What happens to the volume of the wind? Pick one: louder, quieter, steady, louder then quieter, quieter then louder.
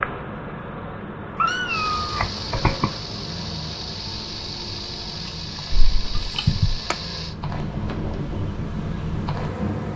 louder.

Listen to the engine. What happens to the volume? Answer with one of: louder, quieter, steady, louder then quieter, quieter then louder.
steady.